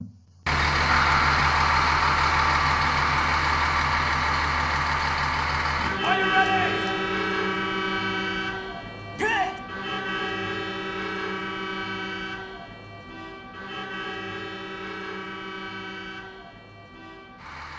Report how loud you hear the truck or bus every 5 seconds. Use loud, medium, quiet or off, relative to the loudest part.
loud, medium, medium, quiet.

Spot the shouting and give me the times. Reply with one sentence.
The shouting can be heard from 6.0 to 7.0 s and from 9.2 to 9.6 s.